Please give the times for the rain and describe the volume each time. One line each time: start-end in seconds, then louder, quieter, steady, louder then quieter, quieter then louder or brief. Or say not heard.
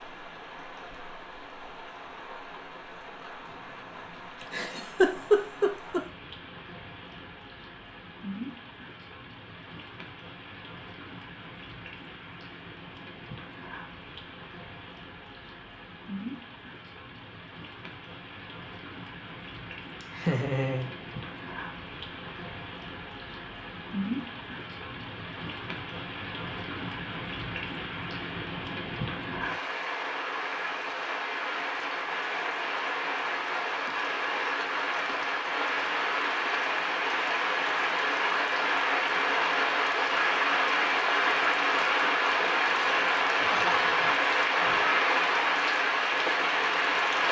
0.0-47.2 louder.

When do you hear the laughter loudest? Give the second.
5 s.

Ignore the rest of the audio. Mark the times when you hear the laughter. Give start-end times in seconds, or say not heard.
4.4-6.0, 20.0-20.9, 43.2-44.9.